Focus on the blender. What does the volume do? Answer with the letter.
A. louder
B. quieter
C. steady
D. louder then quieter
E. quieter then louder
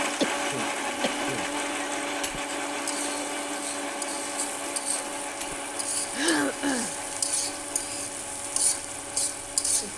B.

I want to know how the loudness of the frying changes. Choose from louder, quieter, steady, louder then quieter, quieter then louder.
louder.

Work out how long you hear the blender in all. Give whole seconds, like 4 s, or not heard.
10 s.